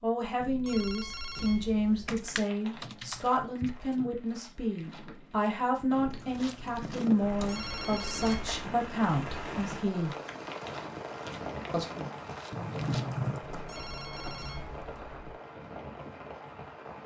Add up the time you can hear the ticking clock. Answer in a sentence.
The ticking clock can't be heard in this clip.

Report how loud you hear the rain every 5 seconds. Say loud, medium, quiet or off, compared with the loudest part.
off, loud, loud, loud.